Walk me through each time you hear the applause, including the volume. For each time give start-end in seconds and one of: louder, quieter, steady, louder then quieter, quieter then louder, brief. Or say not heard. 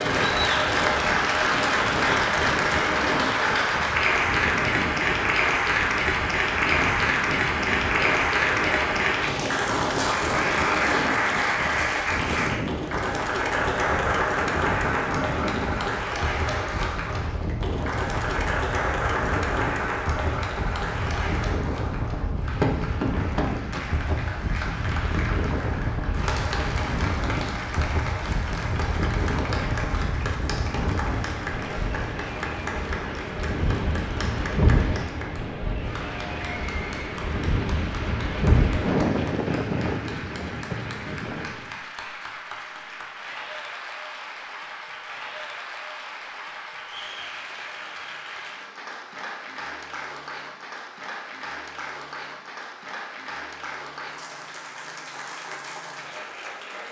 0.0-56.8 quieter.